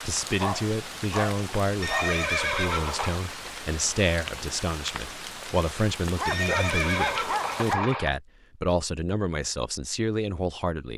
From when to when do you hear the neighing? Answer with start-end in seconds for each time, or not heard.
1.8-3.2, 6.2-8.1.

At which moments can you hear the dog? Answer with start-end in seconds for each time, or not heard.
0.3-2.1, 6.2-7.9.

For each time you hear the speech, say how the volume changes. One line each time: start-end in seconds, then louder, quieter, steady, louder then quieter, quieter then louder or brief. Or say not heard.
0.1-10.9 steady.